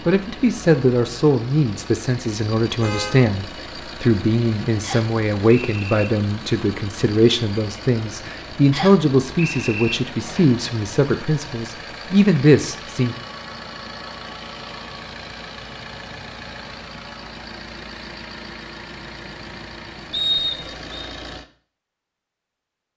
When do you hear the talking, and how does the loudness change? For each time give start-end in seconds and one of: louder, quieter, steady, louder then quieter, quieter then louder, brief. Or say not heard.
0.1-13.2 steady.